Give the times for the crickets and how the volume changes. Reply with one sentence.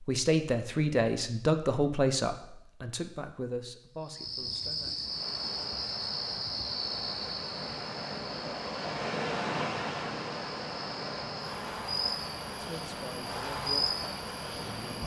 You can hear the crickets from 3.9 to 15.0 s, getting quieter then louder.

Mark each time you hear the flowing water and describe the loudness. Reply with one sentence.
You can hear the flowing water from 5.0 to 15.0 s, getting louder then quieter.